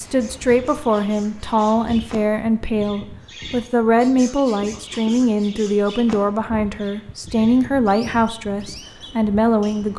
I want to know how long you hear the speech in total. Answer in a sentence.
The speech can be heard for 10 seconds in total.